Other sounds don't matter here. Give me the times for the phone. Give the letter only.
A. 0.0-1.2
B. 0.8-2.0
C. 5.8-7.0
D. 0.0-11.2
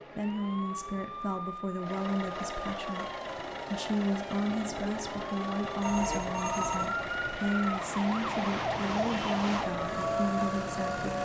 C.